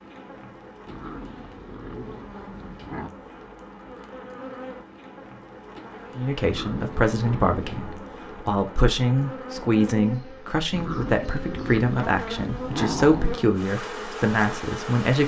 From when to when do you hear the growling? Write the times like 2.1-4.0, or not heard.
0.8-3.1, 6.4-7.8, 10.7-13.4.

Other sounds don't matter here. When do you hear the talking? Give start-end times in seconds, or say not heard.
6.2-15.2.